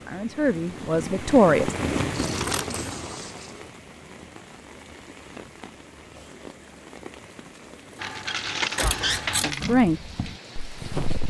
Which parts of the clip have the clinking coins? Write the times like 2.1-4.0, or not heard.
2.1-3.5, 8.0-9.8.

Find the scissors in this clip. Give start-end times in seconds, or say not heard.
2.2-3.0, 8.8-9.6.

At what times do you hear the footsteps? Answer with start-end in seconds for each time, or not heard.
9.6-11.2.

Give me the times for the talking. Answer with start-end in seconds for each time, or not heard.
0.1-1.7, 8.8-10.0.